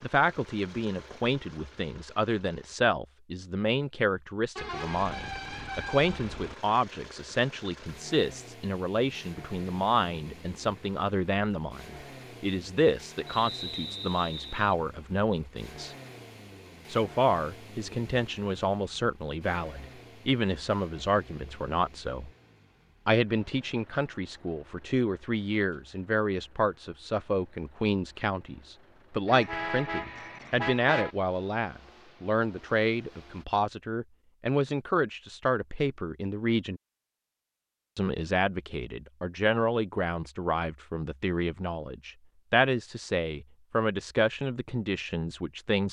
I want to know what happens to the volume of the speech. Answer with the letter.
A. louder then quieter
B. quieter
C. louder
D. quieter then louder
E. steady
E.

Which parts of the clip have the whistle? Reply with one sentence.
The whistle can be heard from 13.3 to 14.8 s.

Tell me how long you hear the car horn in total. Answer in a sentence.
You can hear the car horn for 4 seconds altogether.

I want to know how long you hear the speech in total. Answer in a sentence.
The speech can be heard for 43 seconds in total.